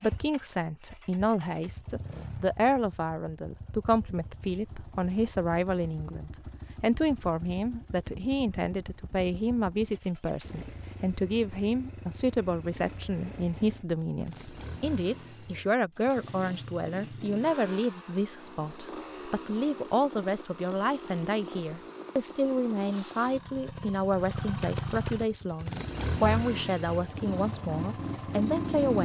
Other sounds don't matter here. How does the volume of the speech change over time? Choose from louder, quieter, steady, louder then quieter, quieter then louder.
steady.